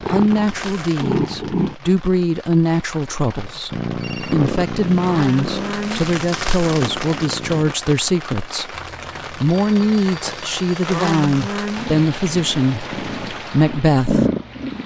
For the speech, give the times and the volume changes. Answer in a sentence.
You can hear the speech from 0.1 to 14.2 s, at a steady volume.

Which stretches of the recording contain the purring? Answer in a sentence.
You can hear the purring from 0.0 to 1.8 s, from 3.7 to 7.8 s and from 11.8 to 14.8 s.